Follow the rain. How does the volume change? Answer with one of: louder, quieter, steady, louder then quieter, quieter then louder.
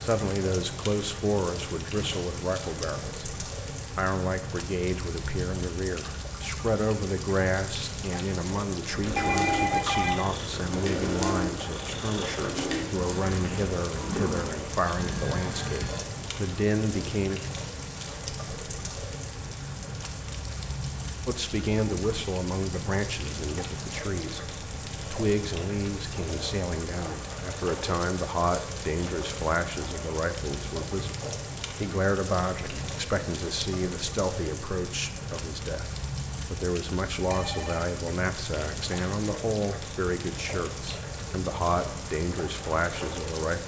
steady.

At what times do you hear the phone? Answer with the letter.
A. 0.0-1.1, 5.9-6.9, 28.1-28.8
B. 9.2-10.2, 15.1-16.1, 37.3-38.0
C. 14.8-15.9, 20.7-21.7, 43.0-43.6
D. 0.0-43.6
B.